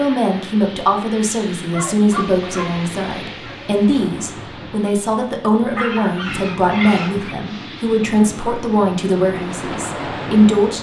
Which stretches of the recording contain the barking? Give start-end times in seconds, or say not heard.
1.7-3.7, 5.8-7.3.